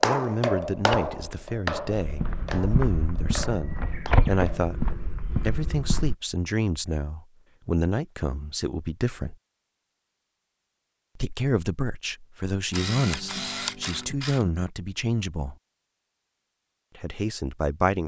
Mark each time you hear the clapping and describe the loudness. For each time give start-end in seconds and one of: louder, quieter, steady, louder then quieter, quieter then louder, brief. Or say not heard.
0.0-4.7 quieter.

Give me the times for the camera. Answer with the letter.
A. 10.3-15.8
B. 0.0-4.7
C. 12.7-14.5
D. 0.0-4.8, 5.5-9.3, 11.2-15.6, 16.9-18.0
C.